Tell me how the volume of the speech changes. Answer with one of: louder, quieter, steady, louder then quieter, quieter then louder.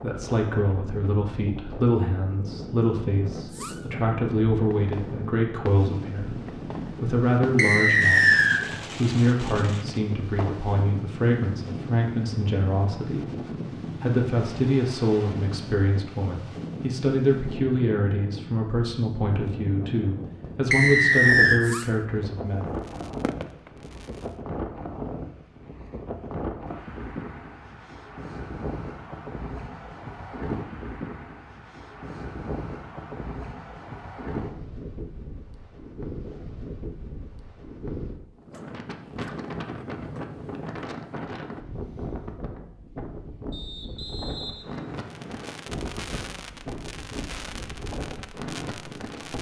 steady.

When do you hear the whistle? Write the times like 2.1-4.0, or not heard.
7.5-8.6, 20.7-21.6, 43.5-45.5.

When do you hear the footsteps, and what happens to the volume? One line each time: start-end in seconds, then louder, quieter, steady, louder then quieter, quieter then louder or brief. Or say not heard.
not heard.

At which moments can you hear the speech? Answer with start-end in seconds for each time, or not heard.
0.0-22.6.